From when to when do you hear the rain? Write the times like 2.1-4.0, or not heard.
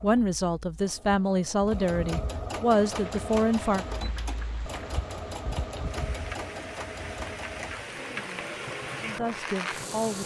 2.6-10.2.